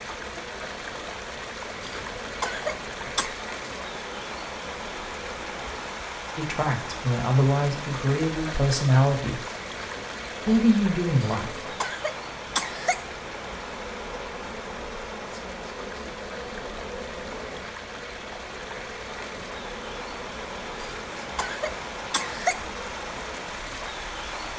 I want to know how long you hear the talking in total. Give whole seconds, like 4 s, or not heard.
4 s.